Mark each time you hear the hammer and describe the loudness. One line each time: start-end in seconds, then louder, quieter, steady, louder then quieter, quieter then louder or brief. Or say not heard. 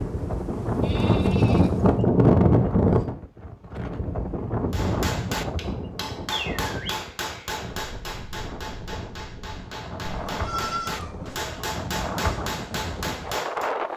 4.7-13.7 quieter then louder.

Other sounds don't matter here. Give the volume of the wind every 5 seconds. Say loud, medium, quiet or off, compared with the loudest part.
loud, medium, loud.